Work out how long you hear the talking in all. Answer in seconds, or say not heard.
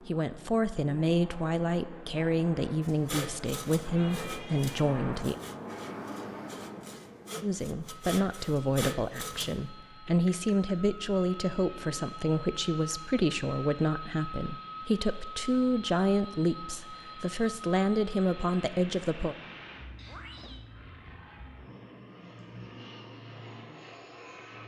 17 s.